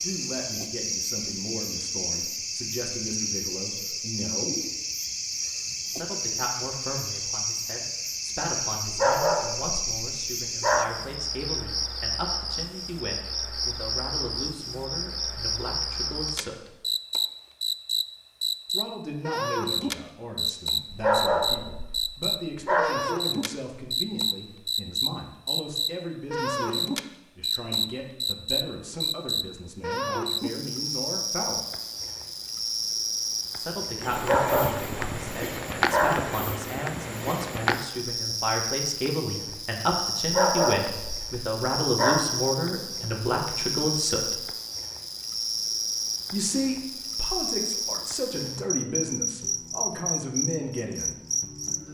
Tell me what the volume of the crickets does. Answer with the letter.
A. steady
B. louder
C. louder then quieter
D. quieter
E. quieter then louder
A.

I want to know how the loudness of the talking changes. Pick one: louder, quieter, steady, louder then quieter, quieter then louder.
louder.